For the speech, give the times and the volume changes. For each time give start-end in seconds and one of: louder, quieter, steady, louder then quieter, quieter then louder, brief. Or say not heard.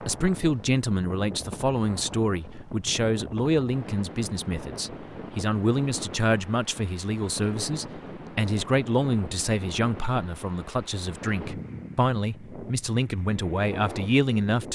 0.0-14.6 steady.